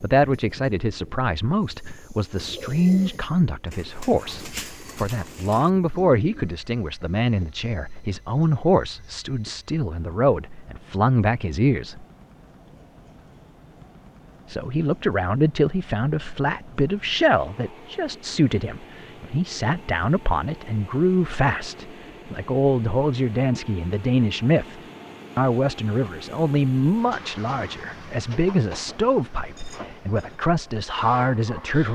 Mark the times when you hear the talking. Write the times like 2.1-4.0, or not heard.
0.0-12.1, 14.4-31.9.